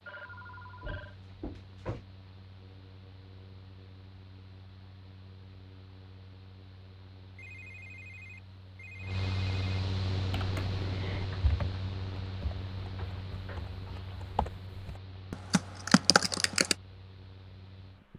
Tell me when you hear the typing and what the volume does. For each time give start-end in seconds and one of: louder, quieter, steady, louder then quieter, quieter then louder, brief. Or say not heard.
10.2-16.8 quieter then louder.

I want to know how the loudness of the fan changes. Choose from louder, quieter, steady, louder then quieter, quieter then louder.
louder then quieter.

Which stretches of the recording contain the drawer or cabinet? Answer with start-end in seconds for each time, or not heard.
0.8-2.0.